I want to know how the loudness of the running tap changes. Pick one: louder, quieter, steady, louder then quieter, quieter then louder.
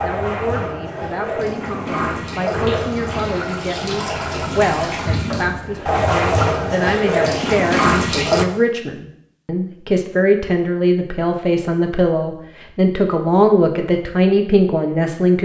louder.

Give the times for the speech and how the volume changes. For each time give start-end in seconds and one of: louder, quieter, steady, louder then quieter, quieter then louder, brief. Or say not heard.
0.0-15.3 louder.